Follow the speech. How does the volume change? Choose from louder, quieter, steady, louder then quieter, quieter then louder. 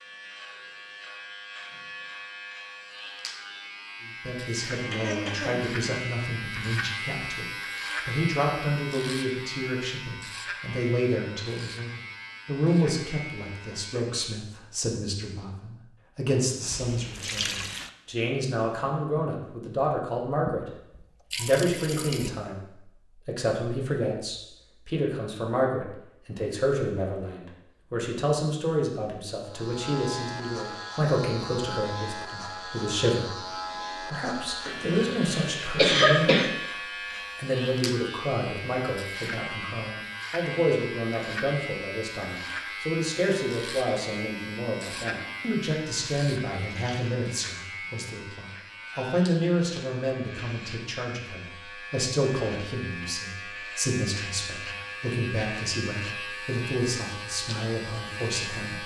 steady.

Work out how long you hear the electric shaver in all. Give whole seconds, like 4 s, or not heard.
44 s.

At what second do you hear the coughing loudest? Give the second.
36 s.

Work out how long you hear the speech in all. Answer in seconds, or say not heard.
53 s.